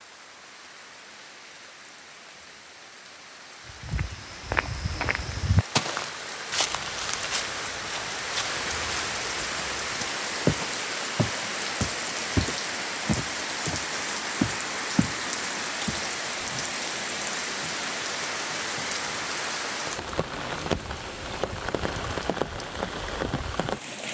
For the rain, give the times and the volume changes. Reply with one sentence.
The rain can be heard from 0.0 to 24.0 s, getting louder.